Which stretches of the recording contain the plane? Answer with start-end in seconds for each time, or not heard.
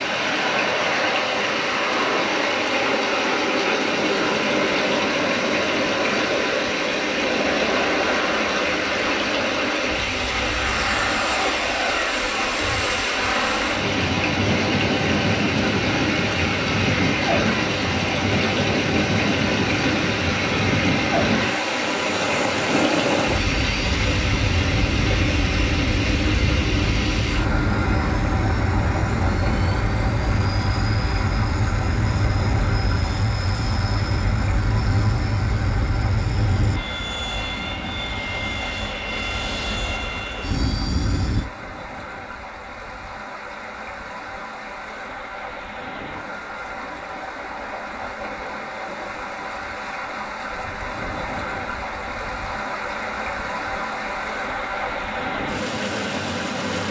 0.0-41.5.